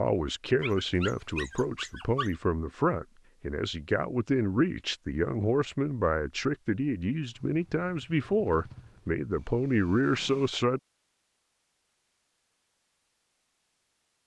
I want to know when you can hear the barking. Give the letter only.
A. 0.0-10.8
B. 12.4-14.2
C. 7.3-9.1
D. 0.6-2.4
D.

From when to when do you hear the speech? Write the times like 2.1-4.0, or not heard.
0.0-10.8.